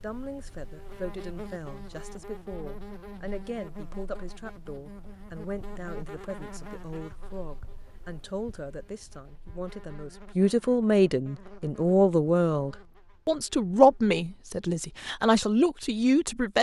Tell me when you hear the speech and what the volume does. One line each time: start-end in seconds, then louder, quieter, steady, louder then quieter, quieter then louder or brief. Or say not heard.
0.0-16.5 louder.